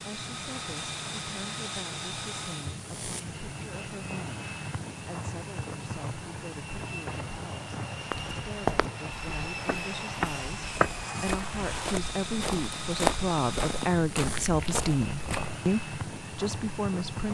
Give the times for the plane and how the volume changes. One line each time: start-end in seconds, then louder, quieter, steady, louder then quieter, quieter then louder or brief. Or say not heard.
0.0-17.2 steady.